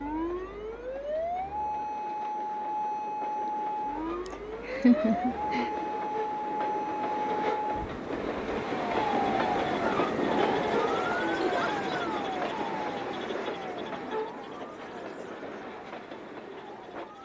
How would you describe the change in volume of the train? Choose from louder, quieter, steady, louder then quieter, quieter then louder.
louder then quieter.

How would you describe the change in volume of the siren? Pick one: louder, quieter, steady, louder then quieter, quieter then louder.
quieter.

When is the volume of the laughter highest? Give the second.
5 s.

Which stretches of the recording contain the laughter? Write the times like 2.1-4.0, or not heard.
4.2-5.7, 11.4-11.9.